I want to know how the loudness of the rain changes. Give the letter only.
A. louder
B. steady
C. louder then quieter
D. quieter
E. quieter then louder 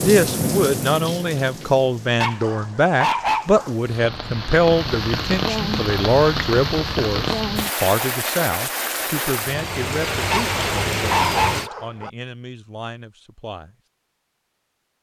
E.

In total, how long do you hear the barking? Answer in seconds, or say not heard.
3 s.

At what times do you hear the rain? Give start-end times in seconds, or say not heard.
0.0-11.7.